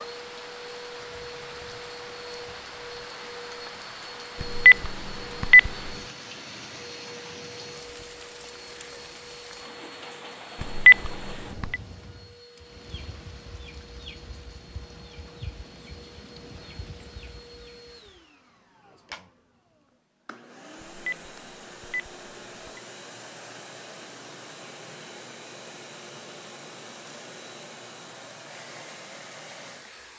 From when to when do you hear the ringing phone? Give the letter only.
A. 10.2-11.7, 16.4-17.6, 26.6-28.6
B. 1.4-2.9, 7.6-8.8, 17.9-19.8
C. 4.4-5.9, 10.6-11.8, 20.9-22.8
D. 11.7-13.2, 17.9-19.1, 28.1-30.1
C.